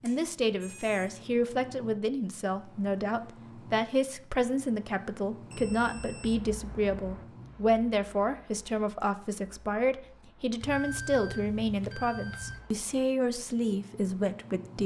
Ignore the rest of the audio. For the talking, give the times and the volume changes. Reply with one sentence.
The talking can be heard from 0.0 to 14.8 s, at a steady volume.